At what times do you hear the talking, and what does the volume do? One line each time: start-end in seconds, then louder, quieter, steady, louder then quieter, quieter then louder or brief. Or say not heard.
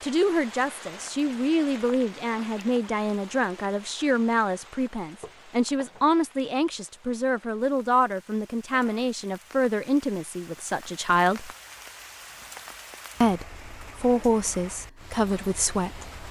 0.0-11.5 steady
13.2-16.1 brief.